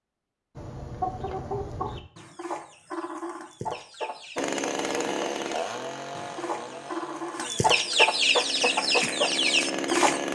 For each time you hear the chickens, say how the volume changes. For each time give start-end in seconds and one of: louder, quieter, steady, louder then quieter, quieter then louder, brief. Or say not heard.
0.6-10.2 quieter then louder.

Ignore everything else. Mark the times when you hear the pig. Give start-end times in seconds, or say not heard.
not heard.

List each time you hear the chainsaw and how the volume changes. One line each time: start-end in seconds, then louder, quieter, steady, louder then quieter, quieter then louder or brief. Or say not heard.
4.3-10.2 quieter then louder.